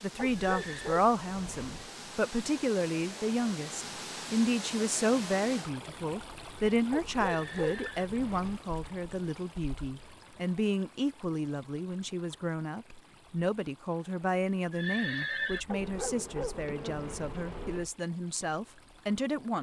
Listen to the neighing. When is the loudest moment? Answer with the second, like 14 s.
15 s.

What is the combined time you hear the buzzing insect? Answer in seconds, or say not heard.
2 s.